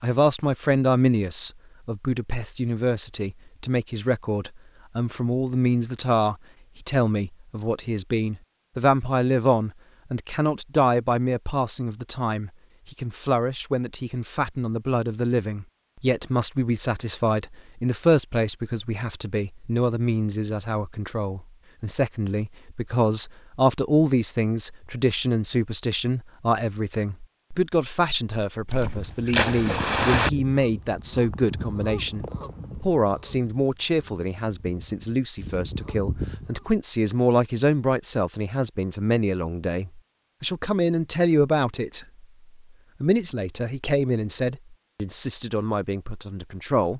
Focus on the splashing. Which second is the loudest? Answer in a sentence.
The volume of the splashing peaks at 30 seconds.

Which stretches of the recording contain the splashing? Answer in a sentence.
The splashing can be heard from 28.7 to 30.3 s.